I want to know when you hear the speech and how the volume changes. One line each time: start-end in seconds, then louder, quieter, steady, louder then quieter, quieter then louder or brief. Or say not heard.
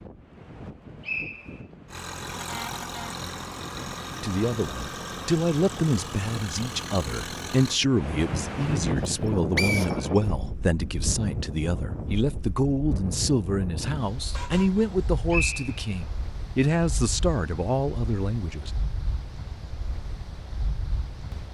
4.2-18.7 steady.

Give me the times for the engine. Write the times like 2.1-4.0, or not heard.
1.9-7.8.